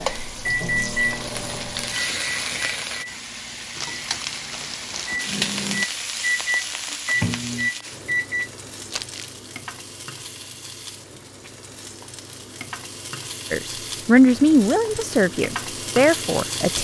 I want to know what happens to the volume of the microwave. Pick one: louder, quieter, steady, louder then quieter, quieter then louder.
quieter then louder.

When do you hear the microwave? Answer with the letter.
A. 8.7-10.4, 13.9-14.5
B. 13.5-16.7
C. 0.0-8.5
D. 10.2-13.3
C.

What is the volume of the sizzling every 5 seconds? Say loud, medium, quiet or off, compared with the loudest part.
loud, loud, medium, loud.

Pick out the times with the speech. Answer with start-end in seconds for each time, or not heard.
13.5-16.7.